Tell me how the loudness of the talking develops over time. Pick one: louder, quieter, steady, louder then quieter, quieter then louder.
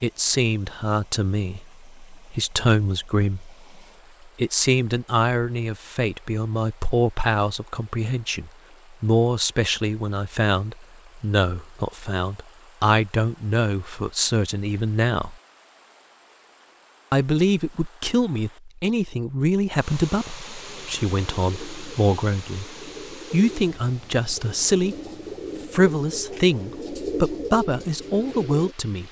steady.